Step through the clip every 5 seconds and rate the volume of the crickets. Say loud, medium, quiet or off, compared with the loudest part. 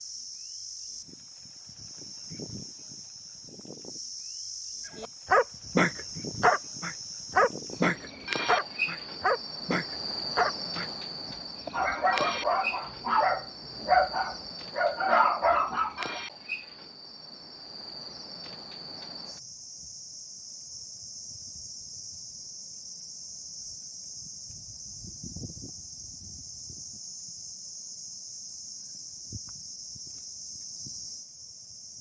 medium, loud, loud, medium, medium, medium, medium.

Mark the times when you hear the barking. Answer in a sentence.
The barking can be heard from 5.0 to 16.2 s.